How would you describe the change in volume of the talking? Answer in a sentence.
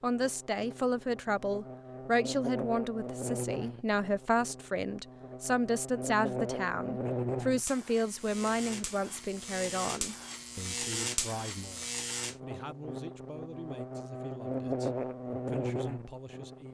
The loudness of the talking goes down.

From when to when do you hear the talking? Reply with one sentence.
You can hear the talking from 0.0 to 16.6 s.